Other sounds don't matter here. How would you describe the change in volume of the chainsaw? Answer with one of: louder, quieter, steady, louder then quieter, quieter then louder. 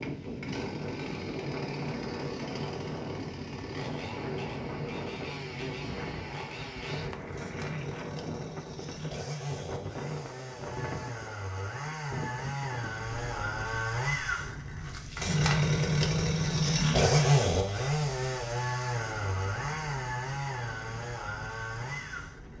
louder then quieter.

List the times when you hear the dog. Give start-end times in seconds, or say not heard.
not heard.